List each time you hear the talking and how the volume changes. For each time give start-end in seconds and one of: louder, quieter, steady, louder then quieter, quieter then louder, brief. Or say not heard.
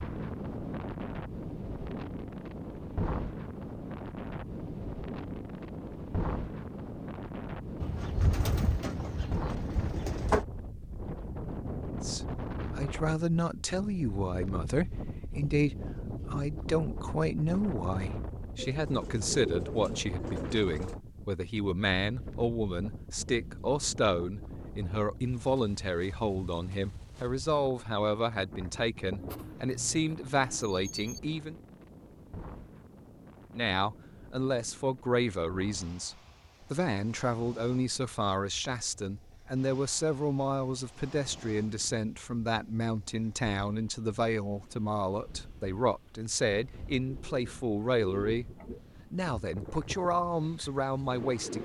12.0-31.6 steady
33.5-48.5 steady
49.1-51.5 brief.